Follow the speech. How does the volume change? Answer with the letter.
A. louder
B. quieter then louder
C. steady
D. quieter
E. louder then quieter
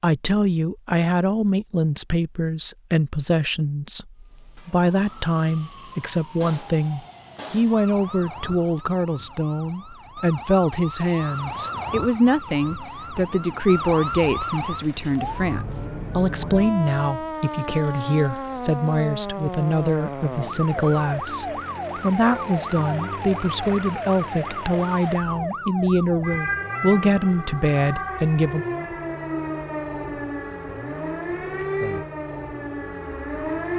C.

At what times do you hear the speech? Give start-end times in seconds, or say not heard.
0.0-28.6.